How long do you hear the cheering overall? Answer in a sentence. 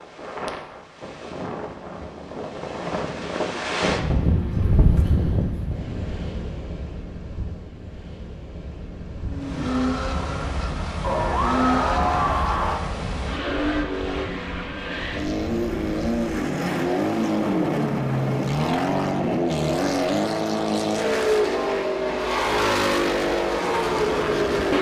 You can hear the cheering for 2 seconds altogether.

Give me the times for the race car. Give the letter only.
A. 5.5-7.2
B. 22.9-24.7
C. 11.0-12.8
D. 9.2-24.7
D.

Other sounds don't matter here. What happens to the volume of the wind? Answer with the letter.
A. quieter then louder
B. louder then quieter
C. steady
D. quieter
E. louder
B.